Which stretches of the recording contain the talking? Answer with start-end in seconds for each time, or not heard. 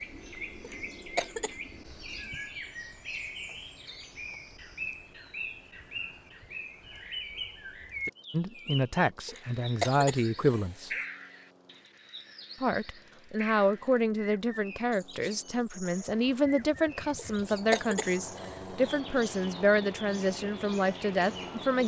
8.3-10.9, 12.6-21.8.